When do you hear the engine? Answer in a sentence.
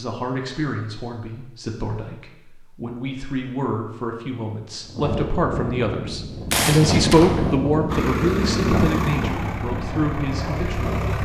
You can hear the engine from 7.8 to 11.2 s.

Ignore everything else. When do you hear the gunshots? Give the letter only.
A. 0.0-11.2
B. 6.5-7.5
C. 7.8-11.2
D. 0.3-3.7
B.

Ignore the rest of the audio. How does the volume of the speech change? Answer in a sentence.
The loudness of the speech goes up, then down.